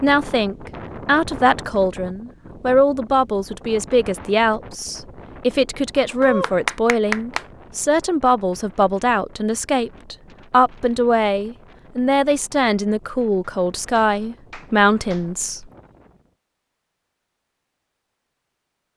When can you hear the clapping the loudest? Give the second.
7 s.